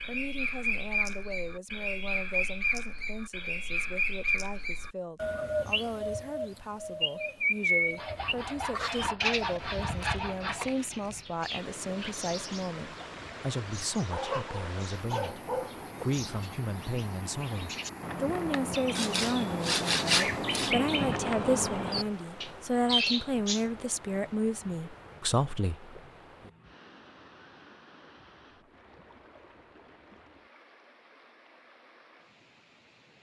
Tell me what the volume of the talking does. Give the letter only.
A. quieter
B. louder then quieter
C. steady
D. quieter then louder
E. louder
E.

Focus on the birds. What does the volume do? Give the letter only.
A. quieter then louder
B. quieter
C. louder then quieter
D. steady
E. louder
A.